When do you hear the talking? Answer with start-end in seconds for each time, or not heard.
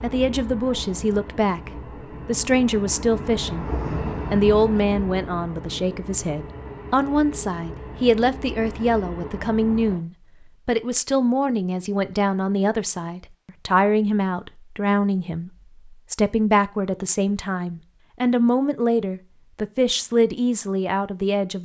0.0-3.6, 4.3-21.6.